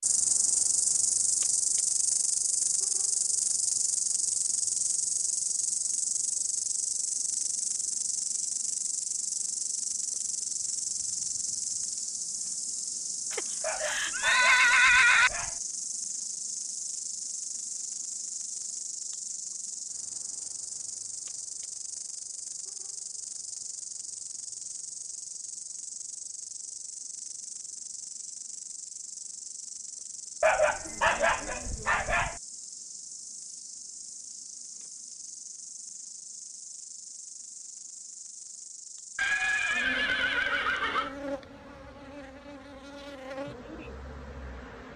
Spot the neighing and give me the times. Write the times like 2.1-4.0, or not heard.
13.3-15.3, 39.1-41.1.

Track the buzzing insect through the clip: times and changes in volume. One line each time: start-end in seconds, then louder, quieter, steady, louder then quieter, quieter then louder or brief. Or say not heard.
0.0-44.9 quieter.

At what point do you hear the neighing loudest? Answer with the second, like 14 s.
15 s.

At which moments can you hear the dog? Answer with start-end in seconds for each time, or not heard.
13.6-15.6, 30.4-32.4.